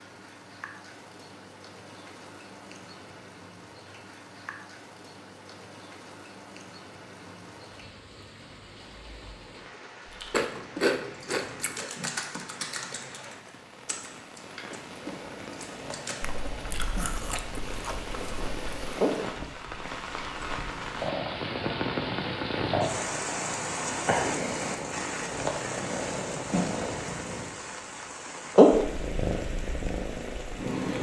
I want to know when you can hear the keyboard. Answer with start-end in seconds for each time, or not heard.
10.1-16.1.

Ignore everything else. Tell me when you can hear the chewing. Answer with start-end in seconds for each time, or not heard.
10.3-11.9, 16.2-18.9.